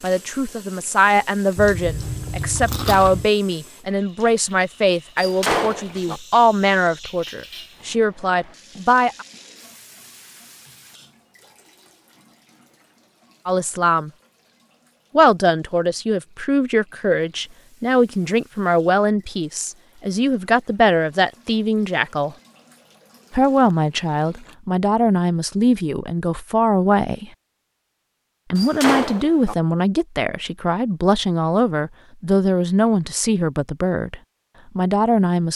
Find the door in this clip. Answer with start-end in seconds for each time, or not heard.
5.2-6.2, 28.6-29.6.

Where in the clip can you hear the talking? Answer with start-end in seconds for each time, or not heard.
0.0-9.2, 13.4-14.1, 15.2-22.4, 23.3-27.3, 28.5-35.5.